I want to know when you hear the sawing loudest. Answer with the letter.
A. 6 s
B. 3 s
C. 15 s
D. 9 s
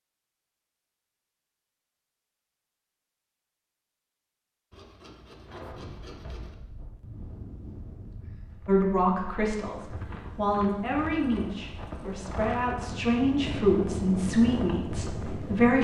A.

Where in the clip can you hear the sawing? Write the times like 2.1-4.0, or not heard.
4.7-6.5.